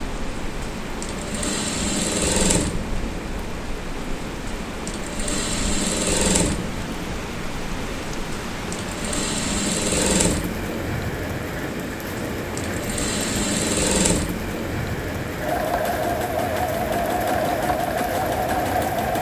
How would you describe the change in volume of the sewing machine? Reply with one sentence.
The volume of the sewing machine stays about the same.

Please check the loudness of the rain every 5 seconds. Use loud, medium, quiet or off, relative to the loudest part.
medium, loud, loud, loud.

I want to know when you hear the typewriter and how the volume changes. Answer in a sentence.
The typewriter can't be heard in this clip.